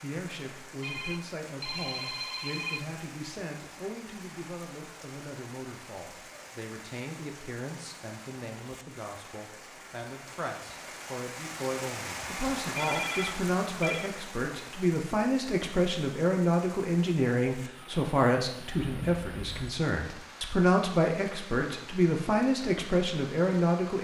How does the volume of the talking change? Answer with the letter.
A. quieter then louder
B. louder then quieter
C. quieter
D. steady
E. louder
E.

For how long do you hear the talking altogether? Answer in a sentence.
You can hear the talking for 24 seconds altogether.